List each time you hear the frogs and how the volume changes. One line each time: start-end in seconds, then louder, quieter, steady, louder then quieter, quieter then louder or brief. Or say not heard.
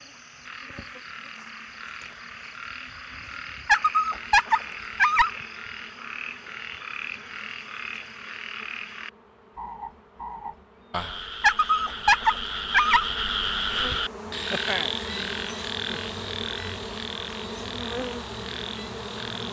0.0-19.4 louder then quieter.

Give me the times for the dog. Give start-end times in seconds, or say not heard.
3.6-5.3, 11.4-13.1.